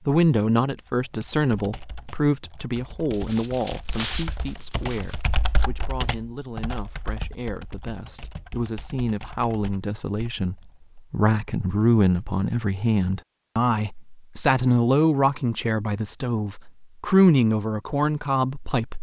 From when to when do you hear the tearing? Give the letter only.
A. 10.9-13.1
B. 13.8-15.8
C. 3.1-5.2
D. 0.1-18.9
C.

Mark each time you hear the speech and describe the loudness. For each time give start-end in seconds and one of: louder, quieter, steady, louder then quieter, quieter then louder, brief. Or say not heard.
0.1-18.9 quieter then louder.